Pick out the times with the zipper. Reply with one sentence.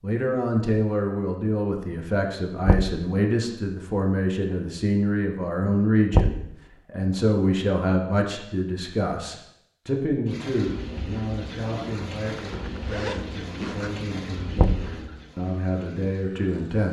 The zipper can be heard from 12.3 to 13.9 s.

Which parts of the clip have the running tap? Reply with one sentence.
You can hear the running tap from 10.2 to 16.8 s.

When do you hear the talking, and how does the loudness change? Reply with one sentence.
You can hear the talking from 0.0 to 16.8 s, getting quieter.